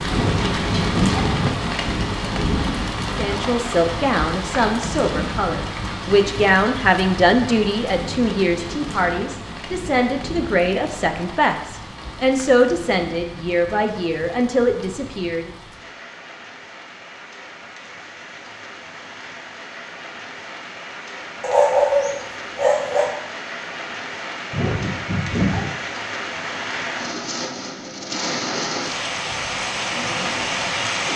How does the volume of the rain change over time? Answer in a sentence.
The volume of the rain goes down, then up.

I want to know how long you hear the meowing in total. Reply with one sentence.
You can hear the meowing for 3 seconds altogether.